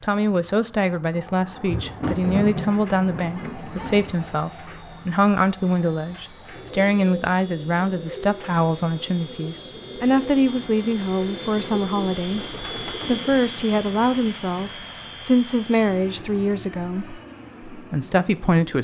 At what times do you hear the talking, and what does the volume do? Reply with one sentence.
You can hear the talking from 0.0 to 18.7 s, at a steady volume.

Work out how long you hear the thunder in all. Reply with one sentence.
You can hear the thunder for 3 seconds altogether.